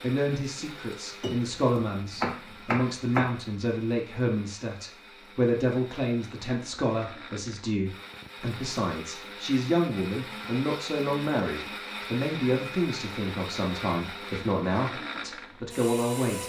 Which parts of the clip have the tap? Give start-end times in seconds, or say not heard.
not heard.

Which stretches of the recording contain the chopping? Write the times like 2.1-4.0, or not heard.
1.2-3.4.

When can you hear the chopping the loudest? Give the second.
3 s.